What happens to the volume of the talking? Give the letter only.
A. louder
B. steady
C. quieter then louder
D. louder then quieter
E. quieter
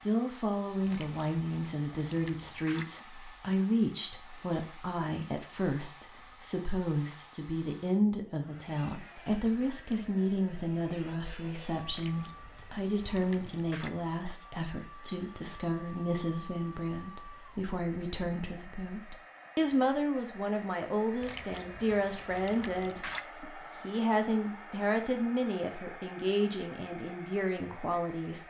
B.